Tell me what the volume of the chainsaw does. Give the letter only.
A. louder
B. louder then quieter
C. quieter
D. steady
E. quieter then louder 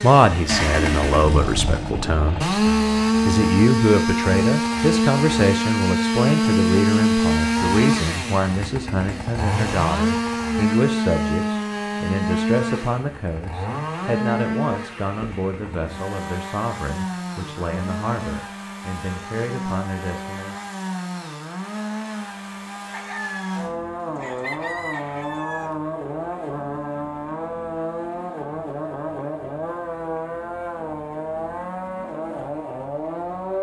C.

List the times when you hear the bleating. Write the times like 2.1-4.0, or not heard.
not heard.